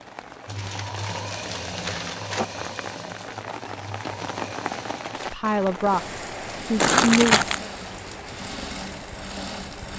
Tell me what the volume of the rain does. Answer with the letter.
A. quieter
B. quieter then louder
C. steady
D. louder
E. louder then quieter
E.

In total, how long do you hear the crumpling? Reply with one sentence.
The crumpling can be heard for 3 seconds in total.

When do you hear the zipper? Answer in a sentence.
The zipper can't be heard in this clip.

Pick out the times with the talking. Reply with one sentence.
The talking can be heard from 5.3 to 7.5 s.